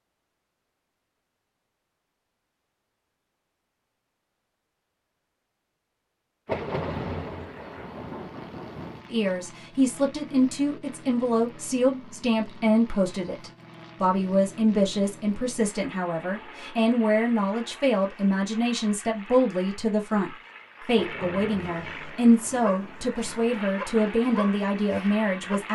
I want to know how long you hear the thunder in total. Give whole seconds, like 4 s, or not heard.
5 s.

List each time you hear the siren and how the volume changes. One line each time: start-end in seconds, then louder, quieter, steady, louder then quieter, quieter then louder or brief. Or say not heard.
not heard.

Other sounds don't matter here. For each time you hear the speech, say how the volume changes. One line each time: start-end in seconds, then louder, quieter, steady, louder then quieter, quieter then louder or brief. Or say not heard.
9.1-25.7 steady.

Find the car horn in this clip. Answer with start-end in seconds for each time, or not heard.
not heard.